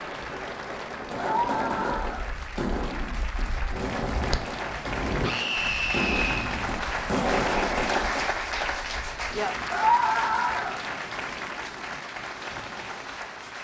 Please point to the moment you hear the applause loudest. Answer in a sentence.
The loudest moment of the applause is at 8 seconds.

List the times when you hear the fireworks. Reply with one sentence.
You can hear the fireworks from 1.0 to 8.2 s.